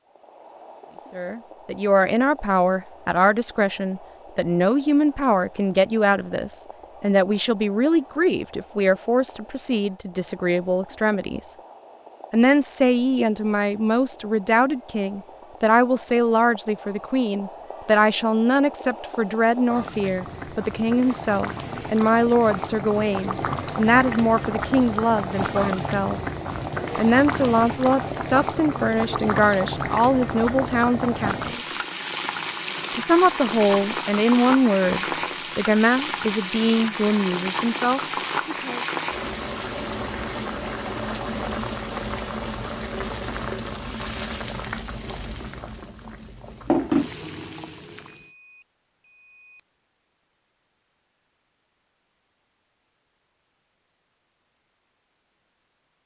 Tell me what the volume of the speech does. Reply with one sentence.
The volume of the speech stays about the same.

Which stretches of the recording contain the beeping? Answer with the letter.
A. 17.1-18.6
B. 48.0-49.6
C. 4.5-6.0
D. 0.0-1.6
B.